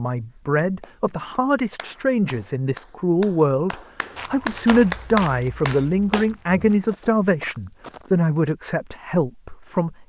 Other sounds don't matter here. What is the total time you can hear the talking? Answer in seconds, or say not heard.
10 s.